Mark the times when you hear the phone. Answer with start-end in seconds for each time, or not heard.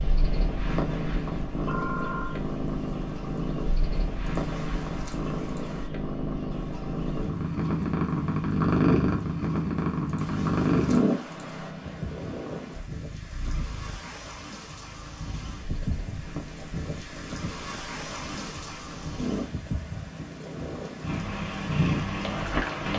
1.6-2.4.